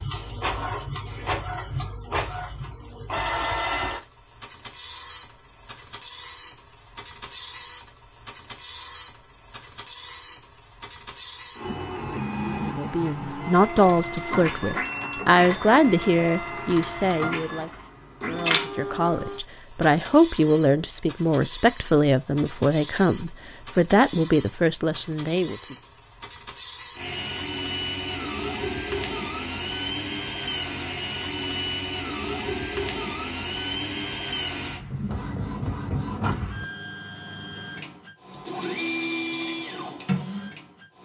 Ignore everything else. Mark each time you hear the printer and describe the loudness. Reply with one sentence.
You can hear the printer from 0.0 to 41.0 s, at a steady volume.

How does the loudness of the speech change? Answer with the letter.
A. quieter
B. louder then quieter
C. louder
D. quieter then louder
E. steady
E.